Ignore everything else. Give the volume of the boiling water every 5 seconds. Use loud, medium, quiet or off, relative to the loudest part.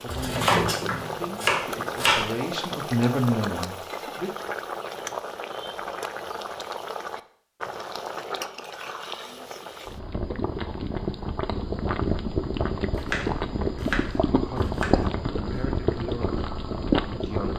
medium, medium, loud, loud.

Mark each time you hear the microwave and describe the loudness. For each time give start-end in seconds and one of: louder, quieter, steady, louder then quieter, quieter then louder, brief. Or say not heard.
not heard.